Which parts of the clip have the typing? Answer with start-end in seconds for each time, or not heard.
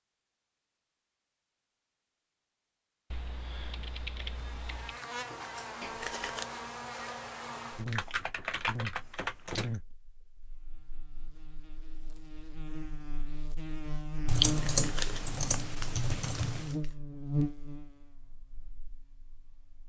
3.1-5.0, 7.8-9.8, 14.2-16.7.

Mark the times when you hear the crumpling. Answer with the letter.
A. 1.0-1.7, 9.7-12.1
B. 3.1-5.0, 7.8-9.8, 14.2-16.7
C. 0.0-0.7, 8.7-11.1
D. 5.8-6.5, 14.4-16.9
D.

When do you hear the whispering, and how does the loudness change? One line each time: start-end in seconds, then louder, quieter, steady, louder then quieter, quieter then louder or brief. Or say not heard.
not heard.